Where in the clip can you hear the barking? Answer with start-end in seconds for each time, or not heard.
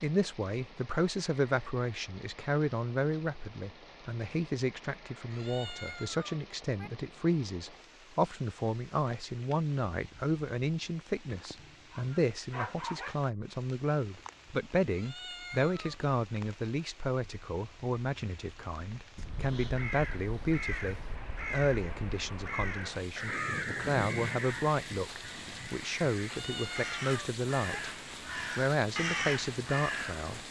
11.6-13.2.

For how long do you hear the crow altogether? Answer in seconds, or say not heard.
11 s.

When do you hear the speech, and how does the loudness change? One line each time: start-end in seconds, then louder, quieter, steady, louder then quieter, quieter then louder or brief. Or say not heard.
0.0-27.9 steady
28.6-30.4 brief.